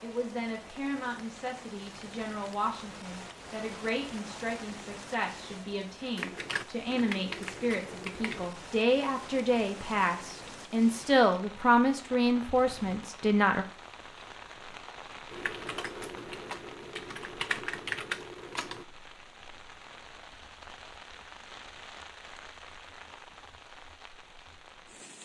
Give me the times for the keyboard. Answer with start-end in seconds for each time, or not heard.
6.2-8.5, 15.3-18.9.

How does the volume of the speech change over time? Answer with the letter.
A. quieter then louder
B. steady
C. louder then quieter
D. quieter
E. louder
E.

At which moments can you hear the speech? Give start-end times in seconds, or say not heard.
0.0-13.7.